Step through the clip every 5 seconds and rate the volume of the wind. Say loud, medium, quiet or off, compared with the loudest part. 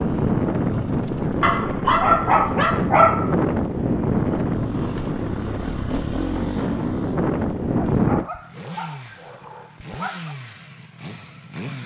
loud, loud, off.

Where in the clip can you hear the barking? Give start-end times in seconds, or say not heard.
1.4-3.4, 7.7-10.3.